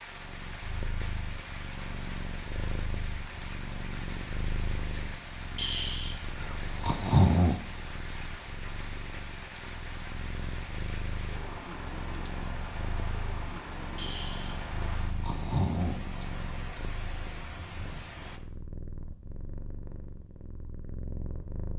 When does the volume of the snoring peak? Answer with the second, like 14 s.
7 s.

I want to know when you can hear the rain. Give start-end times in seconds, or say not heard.
0.0-18.4.